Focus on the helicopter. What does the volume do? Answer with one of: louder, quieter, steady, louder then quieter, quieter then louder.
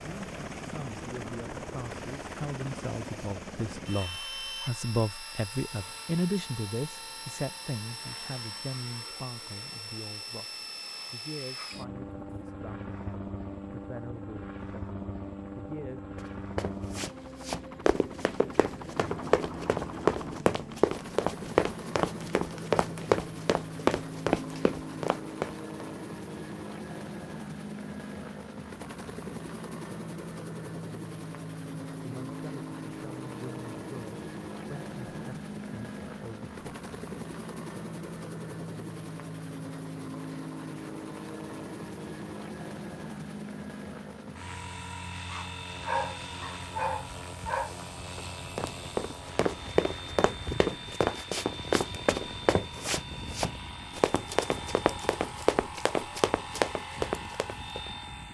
steady.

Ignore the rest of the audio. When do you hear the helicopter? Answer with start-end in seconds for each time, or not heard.
0.0-58.3.